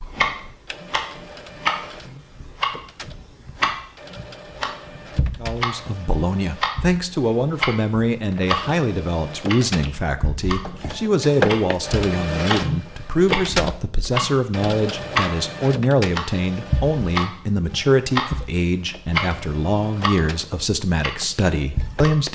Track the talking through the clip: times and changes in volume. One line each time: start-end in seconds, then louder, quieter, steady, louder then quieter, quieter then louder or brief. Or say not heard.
5.4-22.3 steady.